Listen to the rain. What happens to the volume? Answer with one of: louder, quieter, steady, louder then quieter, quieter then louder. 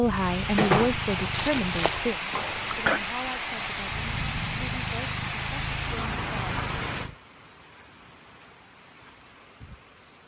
quieter.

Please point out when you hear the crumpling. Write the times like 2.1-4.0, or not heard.
0.6-2.1.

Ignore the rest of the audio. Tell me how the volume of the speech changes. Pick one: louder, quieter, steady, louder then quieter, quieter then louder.
quieter.